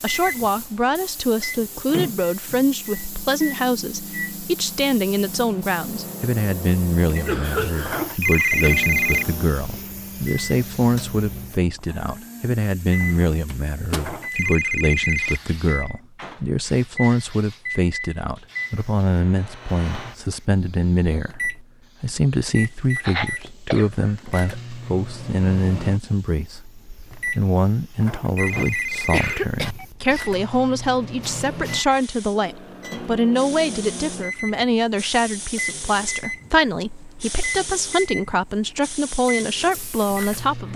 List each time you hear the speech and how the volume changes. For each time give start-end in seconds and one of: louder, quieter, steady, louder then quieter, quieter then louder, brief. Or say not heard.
0.0-40.7 steady.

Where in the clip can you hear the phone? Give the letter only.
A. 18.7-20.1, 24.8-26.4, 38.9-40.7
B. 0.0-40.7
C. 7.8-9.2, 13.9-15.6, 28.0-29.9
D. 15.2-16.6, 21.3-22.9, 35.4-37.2
C.